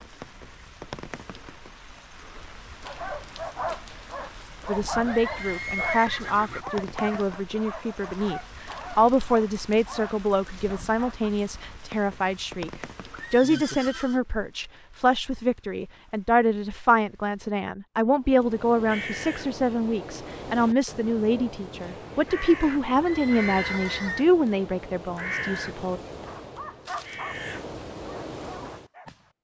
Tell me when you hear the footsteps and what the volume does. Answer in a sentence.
You can't hear the footsteps here.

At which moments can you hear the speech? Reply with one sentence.
The speech can be heard from 4.7 to 12.7 s and from 13.3 to 26.0 s.